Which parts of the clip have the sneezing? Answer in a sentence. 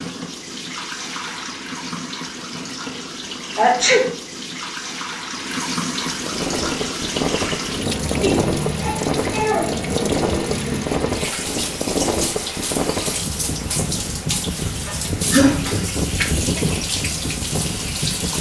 You can hear the sneezing from 3.5 to 4.0 s, from 8.2 to 9.9 s and from 14.8 to 15.8 s.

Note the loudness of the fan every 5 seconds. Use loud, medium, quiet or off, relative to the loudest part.
off, loud, loud, loud.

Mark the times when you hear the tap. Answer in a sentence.
The tap can be heard from 0.0 to 18.3 s.